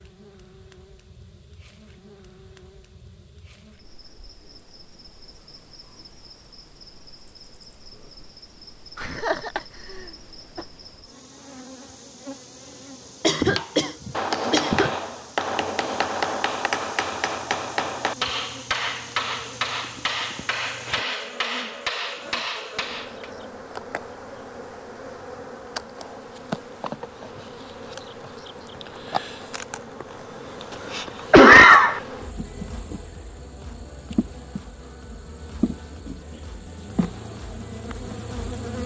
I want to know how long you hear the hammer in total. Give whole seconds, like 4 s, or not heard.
10 s.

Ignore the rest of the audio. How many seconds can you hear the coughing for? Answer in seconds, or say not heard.
4 s.